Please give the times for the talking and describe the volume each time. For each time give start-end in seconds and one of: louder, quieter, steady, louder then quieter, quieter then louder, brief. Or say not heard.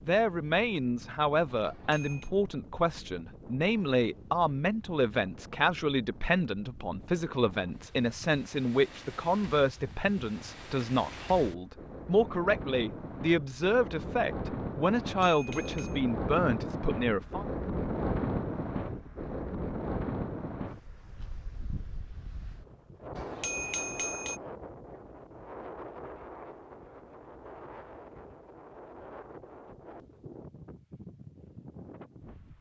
0.1-17.4 steady.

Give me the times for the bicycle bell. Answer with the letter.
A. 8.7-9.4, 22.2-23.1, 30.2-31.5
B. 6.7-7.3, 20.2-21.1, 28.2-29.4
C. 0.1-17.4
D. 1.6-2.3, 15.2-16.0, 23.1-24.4
D.